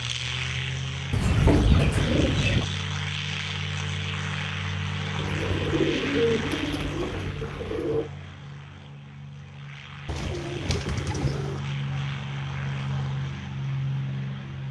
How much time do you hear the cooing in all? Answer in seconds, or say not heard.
6 s.